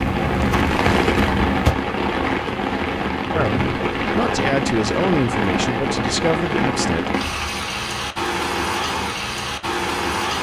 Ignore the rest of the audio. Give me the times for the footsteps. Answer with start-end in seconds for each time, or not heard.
0.0-1.8.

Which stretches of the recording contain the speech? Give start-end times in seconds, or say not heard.
3.3-7.1.